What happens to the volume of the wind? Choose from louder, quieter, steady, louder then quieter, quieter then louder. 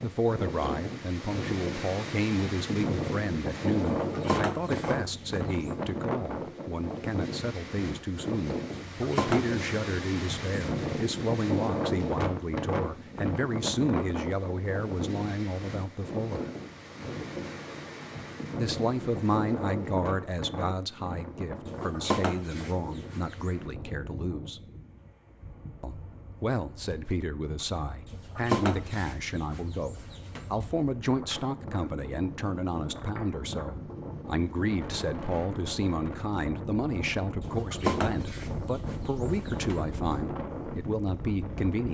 quieter then louder.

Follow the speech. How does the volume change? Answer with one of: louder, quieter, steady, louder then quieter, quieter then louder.
steady.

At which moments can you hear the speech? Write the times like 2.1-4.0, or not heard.
0.0-16.5, 18.6-24.6, 25.8-41.9.